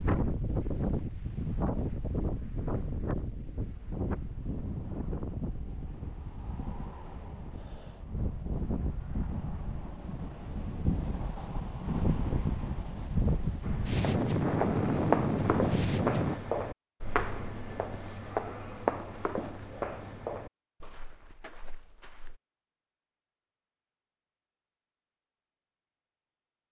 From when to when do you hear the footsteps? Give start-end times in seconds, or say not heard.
13.6-22.4.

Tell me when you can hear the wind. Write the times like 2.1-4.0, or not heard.
0.0-16.4.